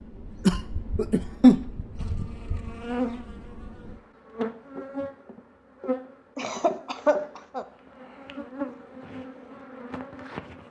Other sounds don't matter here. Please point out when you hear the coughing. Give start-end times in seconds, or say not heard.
0.5-1.6, 6.3-7.7.